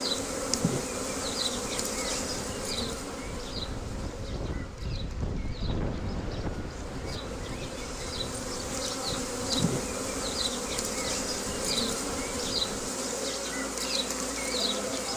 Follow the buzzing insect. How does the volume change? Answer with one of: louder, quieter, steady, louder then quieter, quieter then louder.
quieter then louder.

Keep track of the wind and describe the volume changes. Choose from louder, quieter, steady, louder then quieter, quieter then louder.
louder then quieter.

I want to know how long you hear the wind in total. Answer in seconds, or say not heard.
13 s.